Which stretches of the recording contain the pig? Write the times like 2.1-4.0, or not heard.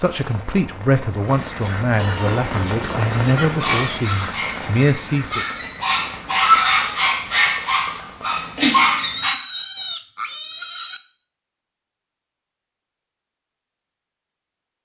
1.9-4.0, 8.9-11.0.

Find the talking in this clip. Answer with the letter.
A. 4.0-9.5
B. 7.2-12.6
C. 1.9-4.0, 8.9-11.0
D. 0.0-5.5
D.